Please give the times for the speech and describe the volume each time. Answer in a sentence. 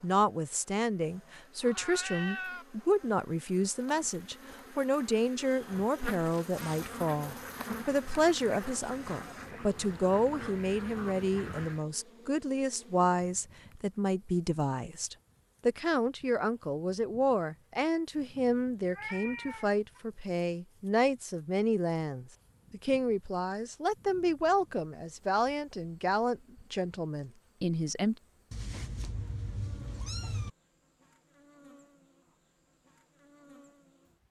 The speech can be heard from 0.0 to 28.1 s, at a steady volume.